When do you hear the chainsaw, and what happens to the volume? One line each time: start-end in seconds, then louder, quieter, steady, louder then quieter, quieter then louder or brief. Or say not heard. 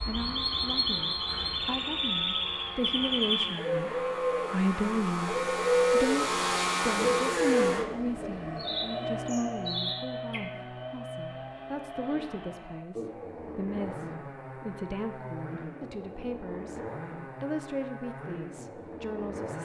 0.0-19.5 louder then quieter.